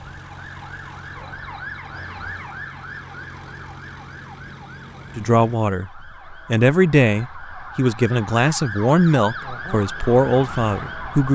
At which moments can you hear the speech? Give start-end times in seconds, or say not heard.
5.2-11.3.